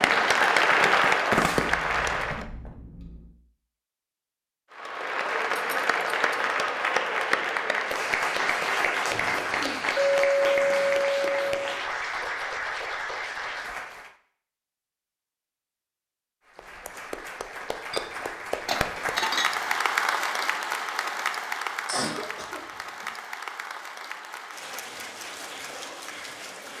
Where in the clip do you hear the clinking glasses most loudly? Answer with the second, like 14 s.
10 s.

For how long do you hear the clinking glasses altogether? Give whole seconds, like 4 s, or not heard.
4 s.